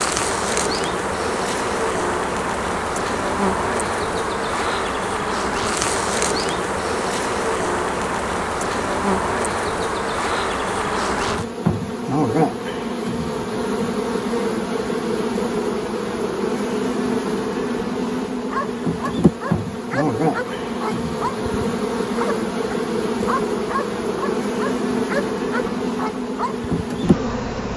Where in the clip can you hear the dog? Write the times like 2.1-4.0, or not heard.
18.5-26.6.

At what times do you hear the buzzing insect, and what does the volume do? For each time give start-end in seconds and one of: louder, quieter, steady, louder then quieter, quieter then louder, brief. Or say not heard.
0.0-27.7 steady.